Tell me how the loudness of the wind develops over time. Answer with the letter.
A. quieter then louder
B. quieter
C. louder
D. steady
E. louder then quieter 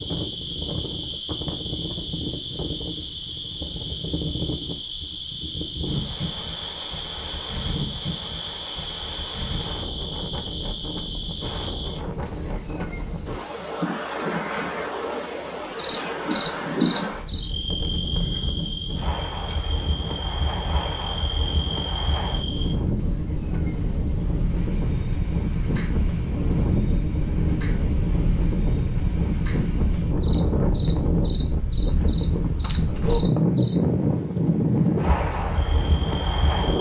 C.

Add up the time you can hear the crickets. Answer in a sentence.
The crickets can be heard for 37 seconds in total.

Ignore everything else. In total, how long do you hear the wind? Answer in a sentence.
You can hear the wind for 37 seconds altogether.